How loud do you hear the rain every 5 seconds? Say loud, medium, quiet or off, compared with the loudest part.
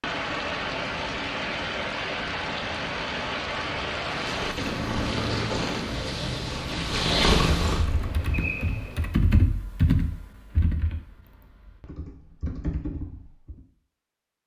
loud, loud, off.